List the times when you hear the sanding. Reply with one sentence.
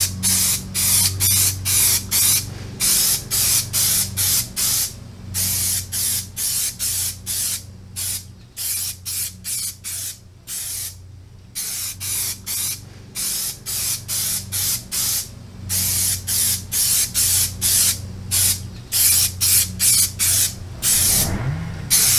The sanding can't be heard in this clip.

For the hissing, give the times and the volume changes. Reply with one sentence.
The hissing can be heard from 0.0 to 22.1 s, getting quieter then louder.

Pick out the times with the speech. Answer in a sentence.
You can't hear the speech here.